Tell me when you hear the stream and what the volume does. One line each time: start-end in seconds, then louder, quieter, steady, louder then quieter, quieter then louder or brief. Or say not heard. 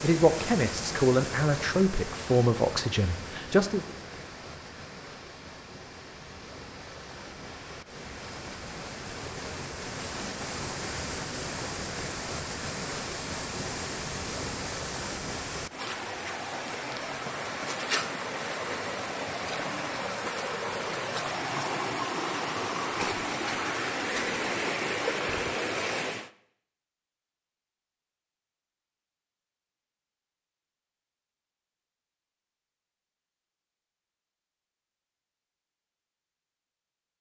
0.0-26.3 louder.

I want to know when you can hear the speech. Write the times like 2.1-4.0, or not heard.
0.0-3.8.